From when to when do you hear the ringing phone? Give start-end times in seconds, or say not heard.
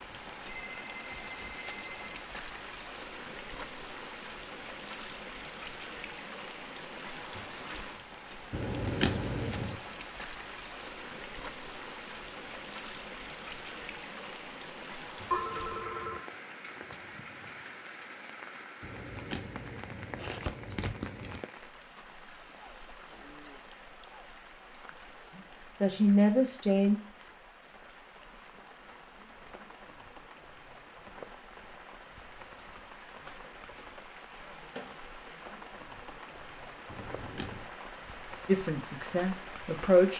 0.5-2.2, 15.3-16.2, 33.4-34.0.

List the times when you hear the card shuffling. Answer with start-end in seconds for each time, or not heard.
8.5-9.8, 18.8-21.4, 36.9-37.7.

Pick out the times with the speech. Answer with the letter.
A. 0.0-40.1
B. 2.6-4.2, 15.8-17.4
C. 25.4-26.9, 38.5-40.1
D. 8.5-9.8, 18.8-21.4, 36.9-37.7
C.